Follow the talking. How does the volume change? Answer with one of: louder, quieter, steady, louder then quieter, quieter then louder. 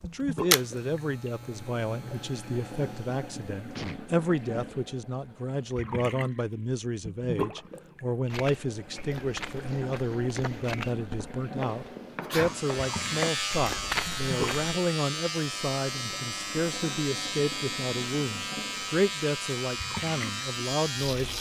steady.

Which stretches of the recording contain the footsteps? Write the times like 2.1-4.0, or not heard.
8.3-14.8.